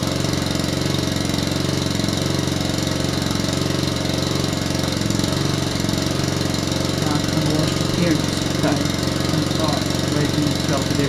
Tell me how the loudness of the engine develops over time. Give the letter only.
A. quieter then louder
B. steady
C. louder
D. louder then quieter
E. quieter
B.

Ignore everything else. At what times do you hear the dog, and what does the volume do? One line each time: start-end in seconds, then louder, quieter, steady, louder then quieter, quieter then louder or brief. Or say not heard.
not heard.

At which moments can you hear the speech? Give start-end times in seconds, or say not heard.
7.0-11.0.